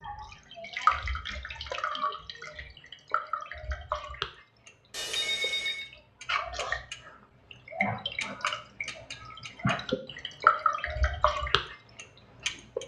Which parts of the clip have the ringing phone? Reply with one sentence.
You can hear the ringing phone from 4.9 to 5.8 s.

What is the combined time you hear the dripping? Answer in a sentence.
You can hear the dripping for 13 seconds altogether.